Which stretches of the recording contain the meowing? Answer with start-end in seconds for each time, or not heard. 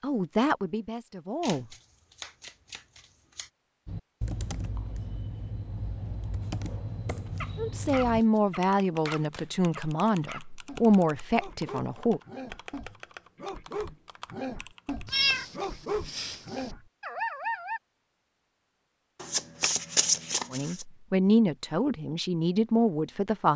15.1-16.7.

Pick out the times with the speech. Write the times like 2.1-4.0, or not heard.
0.0-1.6, 7.5-12.2, 20.5-23.5.